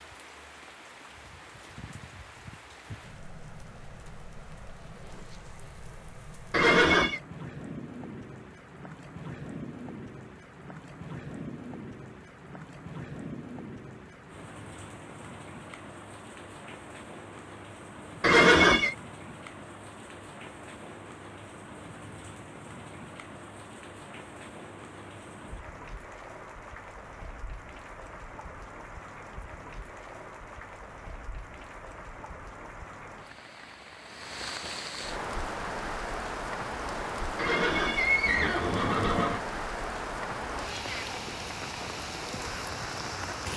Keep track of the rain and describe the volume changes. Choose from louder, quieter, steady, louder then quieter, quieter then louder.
louder.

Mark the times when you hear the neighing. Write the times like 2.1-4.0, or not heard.
6.5-7.2, 18.2-18.9, 37.4-39.4.